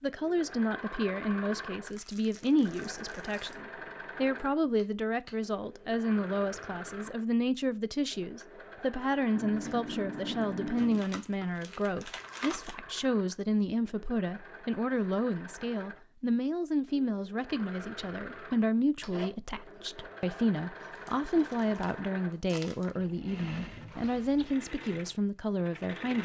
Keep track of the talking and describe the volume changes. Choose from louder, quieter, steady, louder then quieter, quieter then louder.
steady.